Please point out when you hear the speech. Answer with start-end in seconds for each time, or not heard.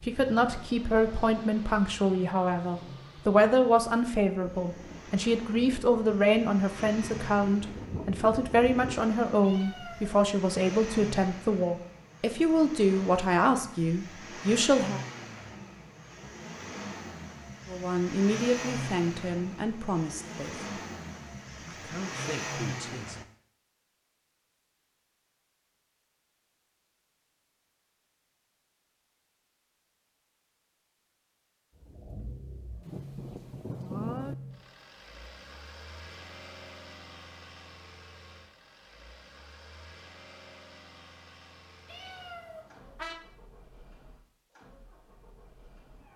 0.0-15.0, 17.6-20.6, 21.8-23.2.